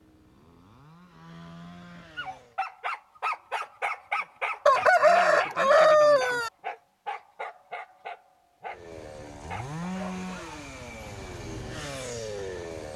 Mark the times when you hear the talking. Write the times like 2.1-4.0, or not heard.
not heard.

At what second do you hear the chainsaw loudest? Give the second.
10 s.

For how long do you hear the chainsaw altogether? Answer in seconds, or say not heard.
7 s.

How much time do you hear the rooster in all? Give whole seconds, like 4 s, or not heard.
2 s.